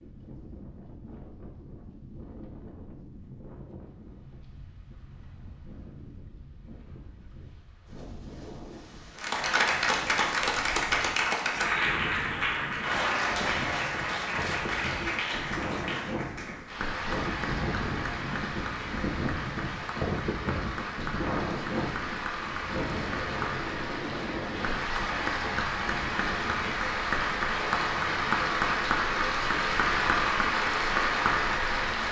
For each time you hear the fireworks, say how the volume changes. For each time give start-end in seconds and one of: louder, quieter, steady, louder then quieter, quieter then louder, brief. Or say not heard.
not heard.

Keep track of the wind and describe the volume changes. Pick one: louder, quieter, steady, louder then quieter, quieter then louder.
louder then quieter.